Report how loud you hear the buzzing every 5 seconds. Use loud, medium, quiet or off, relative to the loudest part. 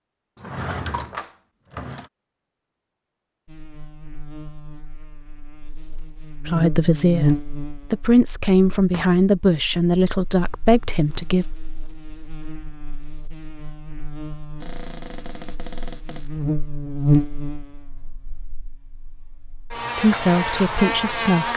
quiet, loud, quiet, loud, loud.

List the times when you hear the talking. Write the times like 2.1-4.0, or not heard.
6.5-11.4, 19.9-21.5.